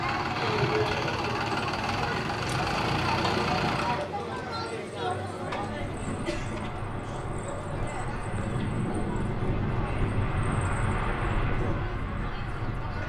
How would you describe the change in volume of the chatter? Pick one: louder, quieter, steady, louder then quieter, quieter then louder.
quieter.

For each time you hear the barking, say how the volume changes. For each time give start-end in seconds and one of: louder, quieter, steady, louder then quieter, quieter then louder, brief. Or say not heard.
not heard.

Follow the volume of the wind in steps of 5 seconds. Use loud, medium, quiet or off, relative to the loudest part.
off, loud, loud.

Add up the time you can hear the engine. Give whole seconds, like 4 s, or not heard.
4 s.